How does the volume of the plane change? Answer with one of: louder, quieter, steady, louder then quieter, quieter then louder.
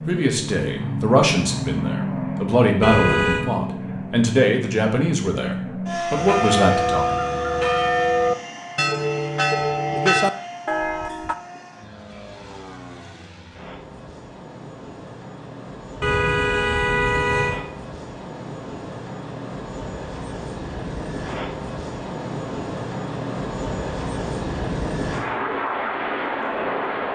quieter then louder.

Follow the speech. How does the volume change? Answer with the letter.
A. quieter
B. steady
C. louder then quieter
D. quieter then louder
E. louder
B.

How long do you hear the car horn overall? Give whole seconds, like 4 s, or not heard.
2 s.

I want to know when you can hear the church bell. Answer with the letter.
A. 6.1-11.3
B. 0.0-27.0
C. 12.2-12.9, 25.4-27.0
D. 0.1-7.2
A.